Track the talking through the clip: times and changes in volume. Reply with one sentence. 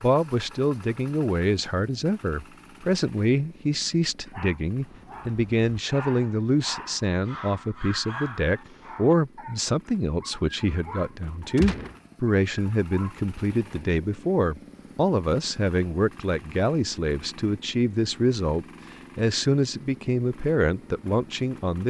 You can hear the talking from 0.0 to 21.8 s, at a steady volume.